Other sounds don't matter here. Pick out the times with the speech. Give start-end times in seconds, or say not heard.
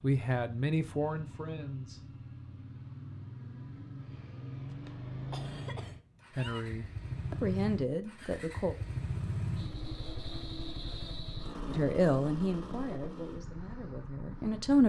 0.0-2.0, 6.3-8.8, 11.7-14.8.